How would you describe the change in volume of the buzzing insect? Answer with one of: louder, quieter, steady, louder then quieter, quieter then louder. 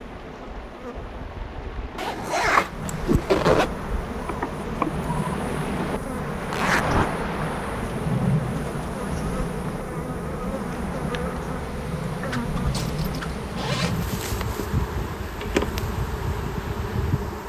louder.